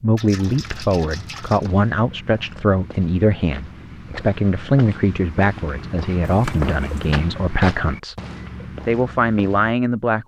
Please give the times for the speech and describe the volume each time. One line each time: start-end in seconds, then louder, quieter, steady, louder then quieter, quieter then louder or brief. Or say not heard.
0.0-8.2 steady
8.8-10.2 brief.